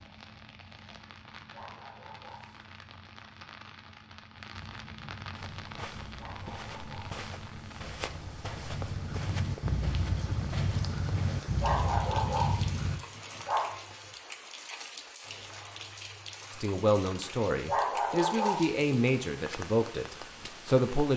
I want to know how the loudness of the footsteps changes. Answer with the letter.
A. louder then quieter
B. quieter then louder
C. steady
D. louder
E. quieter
C.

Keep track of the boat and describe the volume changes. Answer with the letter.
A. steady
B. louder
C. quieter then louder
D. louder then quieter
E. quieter
B.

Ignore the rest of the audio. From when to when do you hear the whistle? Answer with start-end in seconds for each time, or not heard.
not heard.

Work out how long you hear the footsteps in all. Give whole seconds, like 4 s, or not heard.
6 s.